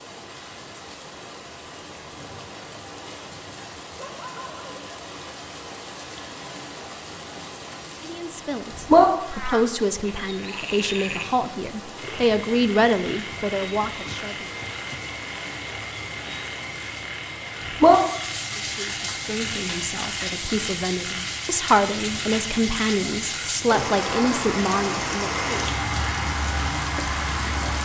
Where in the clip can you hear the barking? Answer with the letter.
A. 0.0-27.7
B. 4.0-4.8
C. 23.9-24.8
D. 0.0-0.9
B.